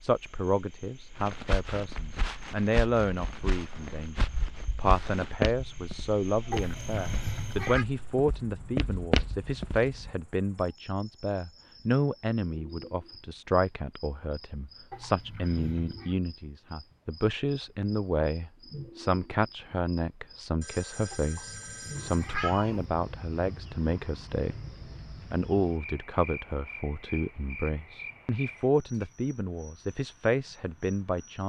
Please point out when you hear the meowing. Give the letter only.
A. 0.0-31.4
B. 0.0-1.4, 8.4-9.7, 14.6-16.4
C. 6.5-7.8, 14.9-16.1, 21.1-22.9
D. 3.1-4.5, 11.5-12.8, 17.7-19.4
C.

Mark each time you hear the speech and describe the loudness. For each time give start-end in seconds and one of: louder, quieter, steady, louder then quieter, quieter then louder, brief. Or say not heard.
0.0-31.4 steady.